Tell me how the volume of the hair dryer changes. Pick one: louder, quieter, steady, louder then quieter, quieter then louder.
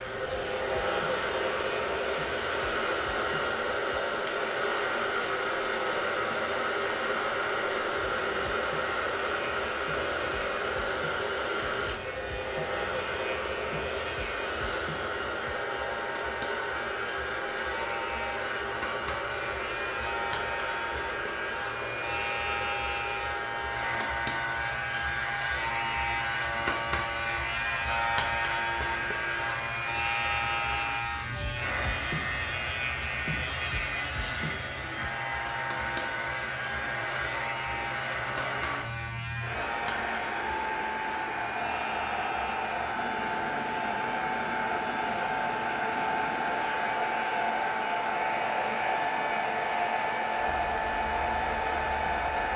quieter then louder.